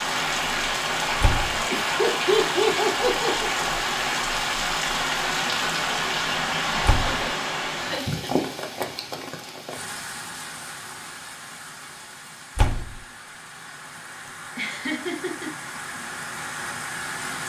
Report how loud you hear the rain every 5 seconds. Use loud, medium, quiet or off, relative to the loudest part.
loud, loud, quiet, medium.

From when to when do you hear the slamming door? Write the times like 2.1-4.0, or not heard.
1.2-1.6, 6.8-7.2, 12.6-13.0.